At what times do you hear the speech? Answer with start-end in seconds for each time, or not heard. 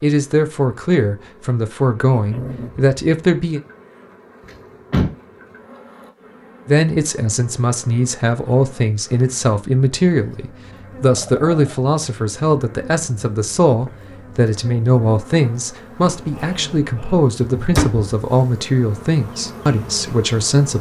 0.0-3.6, 6.7-20.7.